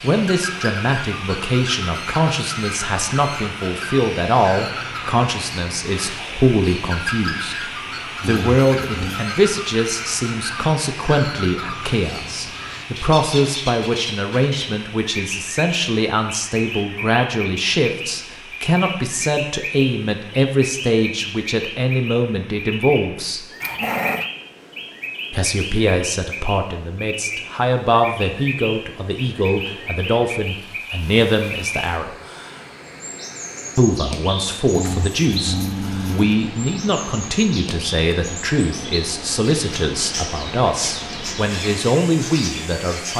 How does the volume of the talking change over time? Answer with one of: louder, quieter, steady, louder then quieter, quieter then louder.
steady.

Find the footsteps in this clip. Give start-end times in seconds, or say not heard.
not heard.